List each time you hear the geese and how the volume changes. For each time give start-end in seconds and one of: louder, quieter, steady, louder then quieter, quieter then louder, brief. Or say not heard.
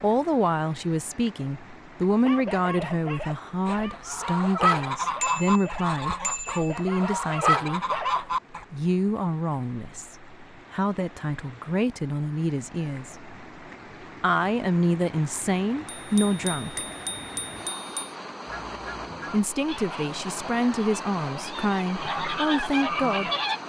3.6-8.7 quieter then louder
18.4-23.6 louder.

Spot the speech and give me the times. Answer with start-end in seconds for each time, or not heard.
0.0-7.8, 8.7-13.2, 14.2-16.9, 19.3-23.3.